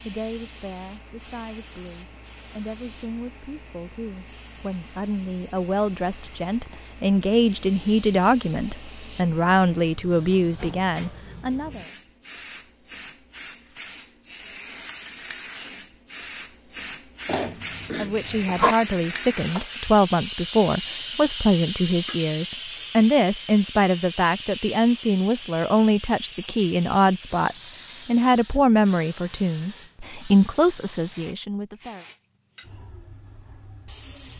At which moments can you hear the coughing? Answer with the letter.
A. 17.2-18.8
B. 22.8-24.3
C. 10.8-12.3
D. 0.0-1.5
A.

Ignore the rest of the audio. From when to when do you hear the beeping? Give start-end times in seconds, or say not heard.
not heard.